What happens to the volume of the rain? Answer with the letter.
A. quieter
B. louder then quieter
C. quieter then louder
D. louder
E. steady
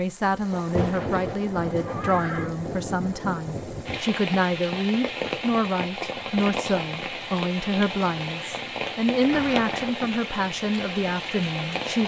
E.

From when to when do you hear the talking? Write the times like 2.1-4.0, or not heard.
0.0-12.0.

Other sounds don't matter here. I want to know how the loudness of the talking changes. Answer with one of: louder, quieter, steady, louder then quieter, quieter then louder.
steady.